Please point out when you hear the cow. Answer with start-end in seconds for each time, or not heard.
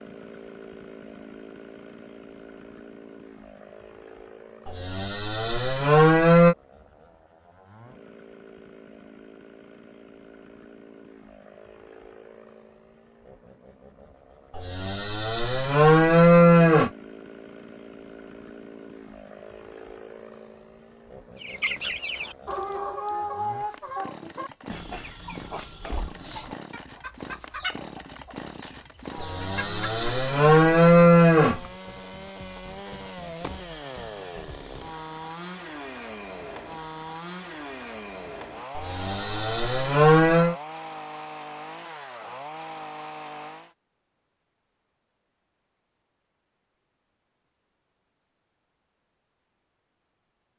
4.7-6.5, 14.6-16.9, 29.1-31.6, 38.8-40.5.